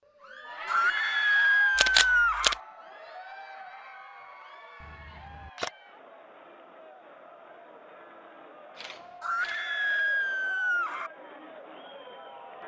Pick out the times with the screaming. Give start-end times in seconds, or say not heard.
0.7-2.5, 9.2-11.1.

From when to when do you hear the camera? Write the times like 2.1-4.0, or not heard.
1.8-2.5, 4.8-5.7, 8.8-9.7.